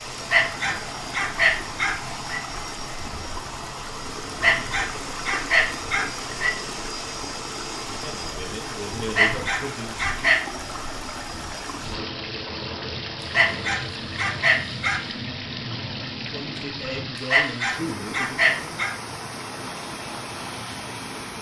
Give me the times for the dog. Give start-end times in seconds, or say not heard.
0.1-2.4, 4.2-6.5, 9.0-10.4, 13.2-15.1, 17.1-18.9.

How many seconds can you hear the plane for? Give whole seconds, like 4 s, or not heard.
17 s.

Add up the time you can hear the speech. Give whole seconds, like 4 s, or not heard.
5 s.